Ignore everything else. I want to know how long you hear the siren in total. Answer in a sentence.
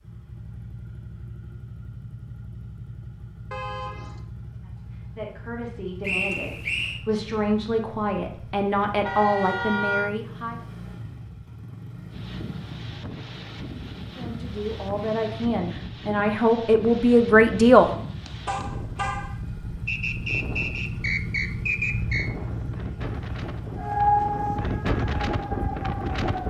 You can hear the siren for 3 seconds altogether.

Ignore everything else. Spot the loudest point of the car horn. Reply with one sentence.
The loudest moment of the car horn is at 10 seconds.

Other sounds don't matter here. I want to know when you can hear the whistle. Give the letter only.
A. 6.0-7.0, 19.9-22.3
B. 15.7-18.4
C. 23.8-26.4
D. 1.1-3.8
A.